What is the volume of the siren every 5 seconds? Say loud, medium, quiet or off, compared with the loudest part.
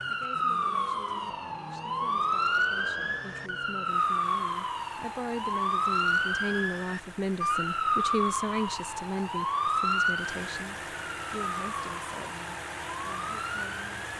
loud, loud, medium.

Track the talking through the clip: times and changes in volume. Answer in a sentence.
You can hear the talking from 0.1 to 14.1 s, getting louder then quieter.